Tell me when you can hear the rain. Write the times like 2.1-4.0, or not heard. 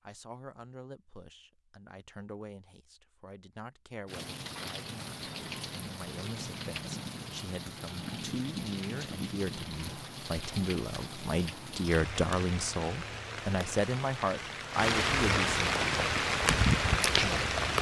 4.0-17.7.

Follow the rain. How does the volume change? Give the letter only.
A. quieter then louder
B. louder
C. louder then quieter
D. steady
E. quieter
B.